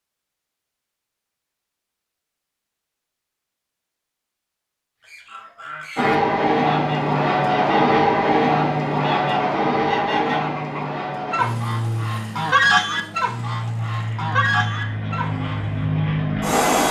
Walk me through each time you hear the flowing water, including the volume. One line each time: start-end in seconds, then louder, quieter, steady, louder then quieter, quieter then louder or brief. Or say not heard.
not heard.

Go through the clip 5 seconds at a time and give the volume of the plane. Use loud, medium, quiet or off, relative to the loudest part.
off, loud, medium, loud.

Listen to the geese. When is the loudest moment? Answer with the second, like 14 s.
13 s.